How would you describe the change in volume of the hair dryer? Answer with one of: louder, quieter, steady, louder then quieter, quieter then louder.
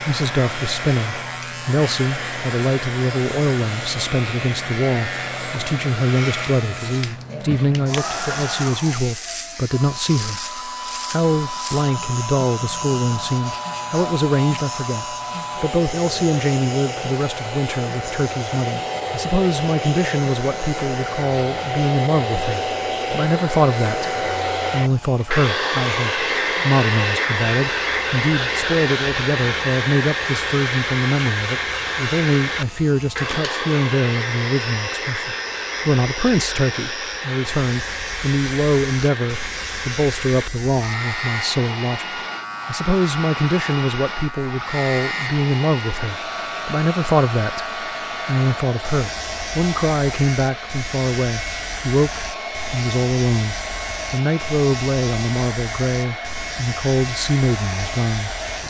louder then quieter.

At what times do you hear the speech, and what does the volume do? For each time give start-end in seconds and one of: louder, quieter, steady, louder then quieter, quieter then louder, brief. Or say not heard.
0.0-58.3 steady.